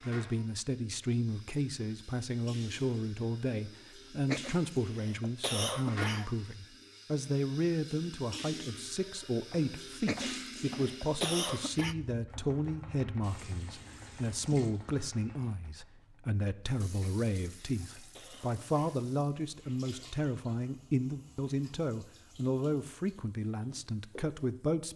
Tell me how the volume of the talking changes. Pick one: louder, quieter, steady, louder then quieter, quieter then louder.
steady.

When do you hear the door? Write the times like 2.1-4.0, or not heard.
not heard.